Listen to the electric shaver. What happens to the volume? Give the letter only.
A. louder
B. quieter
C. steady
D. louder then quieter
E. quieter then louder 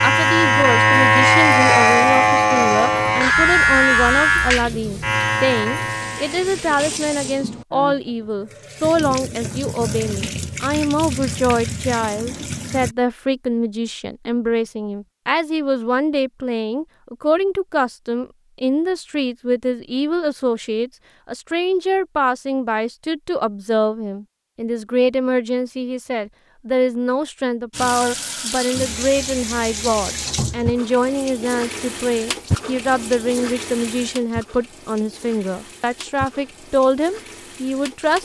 B.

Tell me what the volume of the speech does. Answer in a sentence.
The volume of the speech stays about the same.